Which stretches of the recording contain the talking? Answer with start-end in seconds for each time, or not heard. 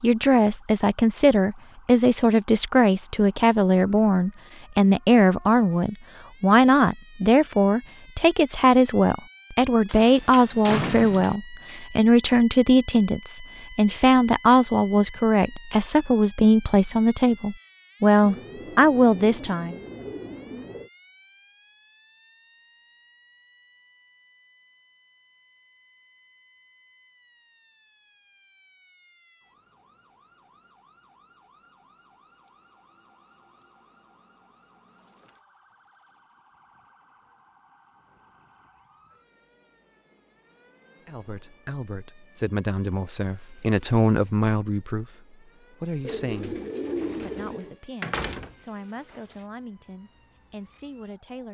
0.0-19.8, 41.0-46.6, 47.2-51.4.